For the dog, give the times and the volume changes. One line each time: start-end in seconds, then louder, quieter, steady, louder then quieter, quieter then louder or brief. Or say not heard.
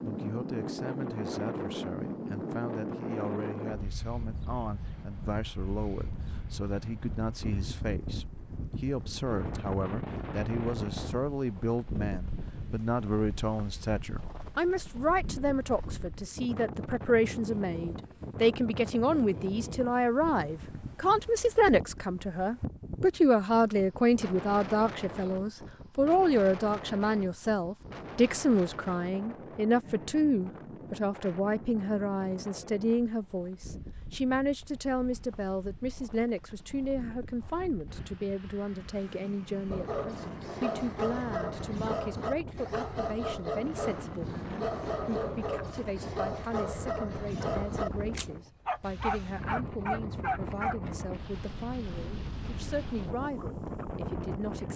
39.7-50.8 steady.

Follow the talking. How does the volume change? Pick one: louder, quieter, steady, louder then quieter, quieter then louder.
louder then quieter.